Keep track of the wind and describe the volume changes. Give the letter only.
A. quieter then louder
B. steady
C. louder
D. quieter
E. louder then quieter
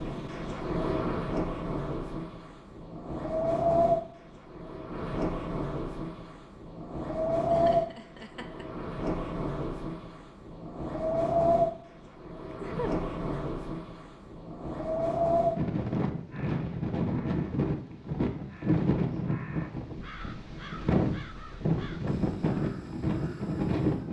B.